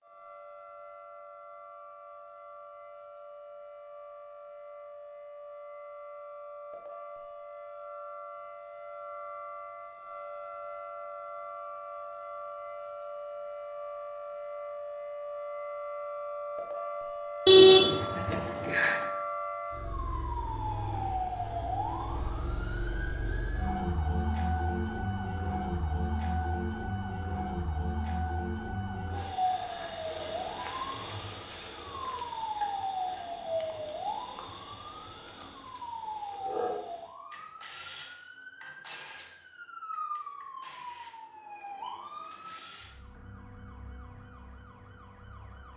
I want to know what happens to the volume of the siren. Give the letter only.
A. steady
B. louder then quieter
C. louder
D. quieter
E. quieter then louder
B.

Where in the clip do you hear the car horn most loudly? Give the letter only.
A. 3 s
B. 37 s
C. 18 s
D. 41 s
C.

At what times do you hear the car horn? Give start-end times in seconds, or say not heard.
17.4-19.0.